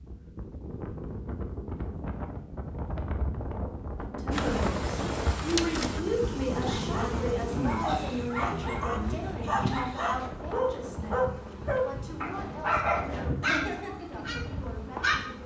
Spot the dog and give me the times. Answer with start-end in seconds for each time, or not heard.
6.5-15.2.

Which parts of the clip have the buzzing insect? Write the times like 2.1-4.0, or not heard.
4.3-15.4.